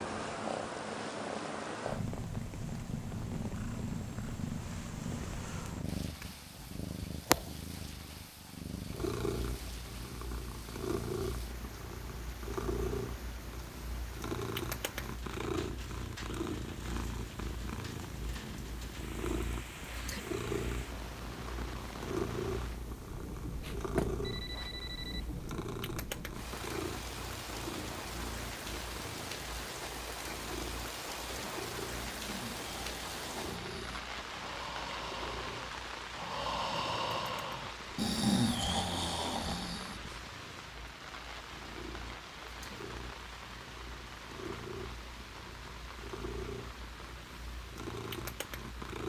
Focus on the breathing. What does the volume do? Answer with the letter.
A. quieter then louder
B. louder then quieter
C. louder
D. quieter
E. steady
C.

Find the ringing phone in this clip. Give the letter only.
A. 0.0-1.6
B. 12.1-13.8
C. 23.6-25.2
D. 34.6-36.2
C.